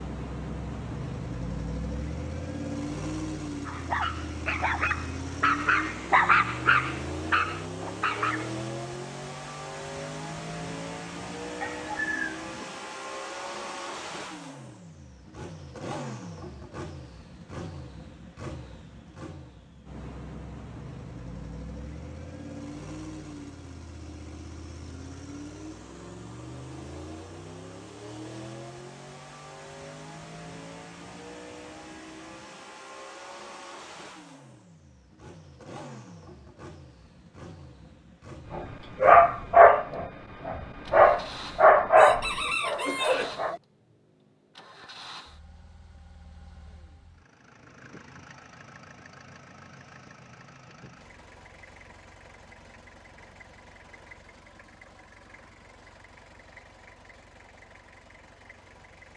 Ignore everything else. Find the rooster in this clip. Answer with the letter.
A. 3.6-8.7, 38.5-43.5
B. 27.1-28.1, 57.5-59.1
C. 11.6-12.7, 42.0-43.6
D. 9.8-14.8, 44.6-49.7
C.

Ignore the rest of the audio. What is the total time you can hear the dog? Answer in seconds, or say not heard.
10 s.